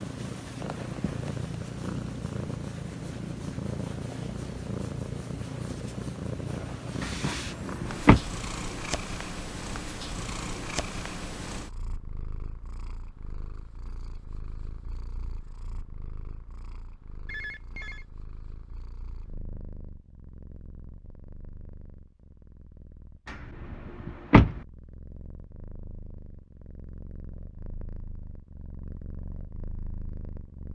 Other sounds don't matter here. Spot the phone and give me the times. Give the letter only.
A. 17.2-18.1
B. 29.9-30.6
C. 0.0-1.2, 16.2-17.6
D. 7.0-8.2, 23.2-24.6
A.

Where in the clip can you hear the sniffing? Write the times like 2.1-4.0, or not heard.
not heard.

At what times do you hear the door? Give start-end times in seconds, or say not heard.
7.0-8.2, 23.2-24.6.